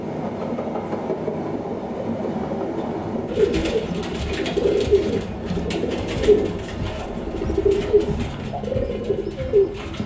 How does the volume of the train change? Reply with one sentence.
The volume of the train goes down.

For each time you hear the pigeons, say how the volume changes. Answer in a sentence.
You can hear the pigeons from 3.2 to 10.0 s, at a steady volume.